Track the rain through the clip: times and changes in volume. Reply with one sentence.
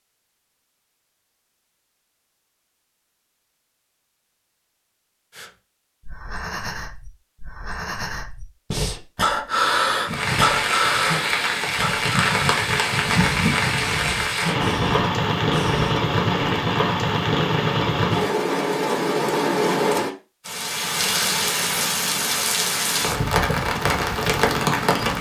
You can hear the rain from 10.1 to 25.1 s, at a steady volume.